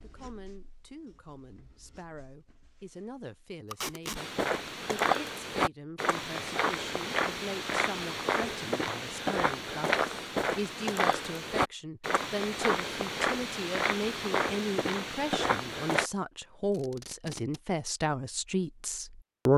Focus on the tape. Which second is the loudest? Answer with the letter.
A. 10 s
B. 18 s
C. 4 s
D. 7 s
C.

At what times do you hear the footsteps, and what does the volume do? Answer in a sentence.
You can hear the footsteps from 4.2 to 16.1 s, at a steady volume.